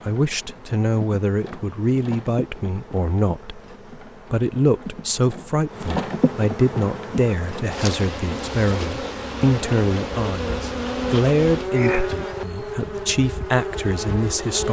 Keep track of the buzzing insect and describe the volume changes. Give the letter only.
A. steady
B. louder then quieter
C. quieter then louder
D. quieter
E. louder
E.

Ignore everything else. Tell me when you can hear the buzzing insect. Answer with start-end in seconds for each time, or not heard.
0.0-14.6.